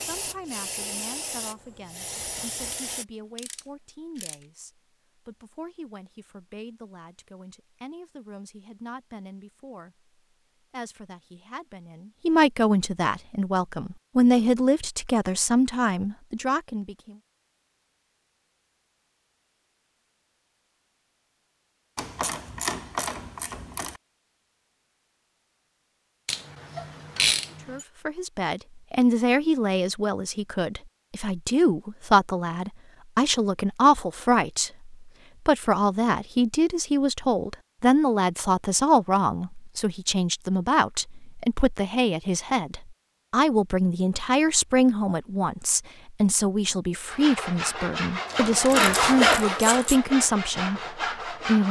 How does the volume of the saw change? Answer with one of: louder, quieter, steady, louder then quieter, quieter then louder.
louder then quieter.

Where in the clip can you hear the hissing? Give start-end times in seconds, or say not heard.
0.0-3.0.